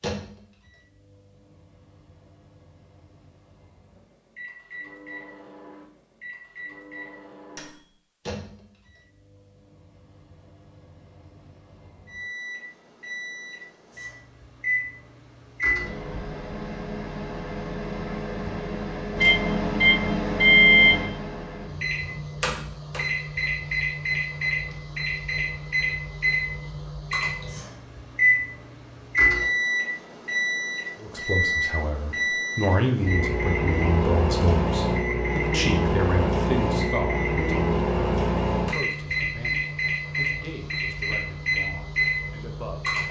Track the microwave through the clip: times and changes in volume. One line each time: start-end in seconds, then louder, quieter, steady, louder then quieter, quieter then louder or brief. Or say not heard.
0.0-43.0 louder.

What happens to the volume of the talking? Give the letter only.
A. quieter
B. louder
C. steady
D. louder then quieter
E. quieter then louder
A.